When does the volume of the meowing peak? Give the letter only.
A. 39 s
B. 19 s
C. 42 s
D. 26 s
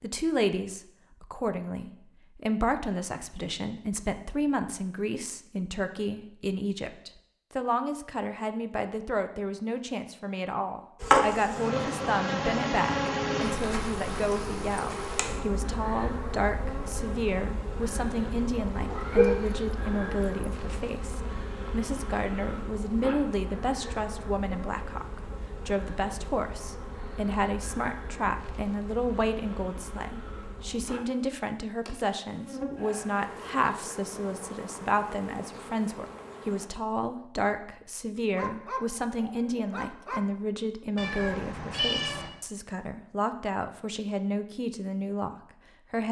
C.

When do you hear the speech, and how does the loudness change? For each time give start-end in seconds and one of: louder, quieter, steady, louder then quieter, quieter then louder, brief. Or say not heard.
0.0-46.0 steady.